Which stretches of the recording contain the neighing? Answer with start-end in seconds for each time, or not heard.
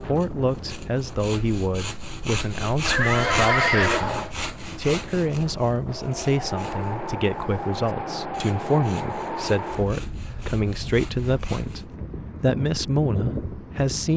2.9-4.3.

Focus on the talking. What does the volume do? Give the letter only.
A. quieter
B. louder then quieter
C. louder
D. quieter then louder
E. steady
E.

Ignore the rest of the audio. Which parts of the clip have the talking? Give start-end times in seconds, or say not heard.
0.1-14.1.